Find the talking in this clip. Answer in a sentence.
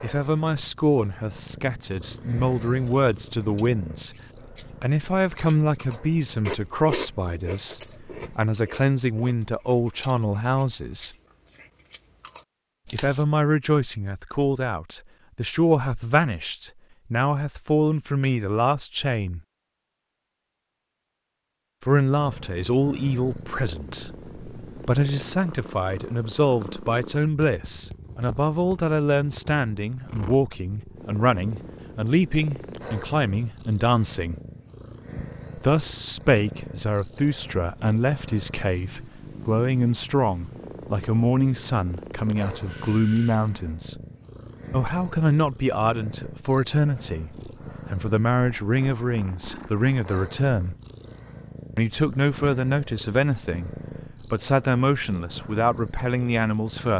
The talking can be heard from 0.0 to 11.1 s, from 12.9 to 19.4 s, from 21.8 to 34.4 s, from 35.5 to 44.0 s, from 44.7 to 50.8 s and from 51.8 to 56.9 s.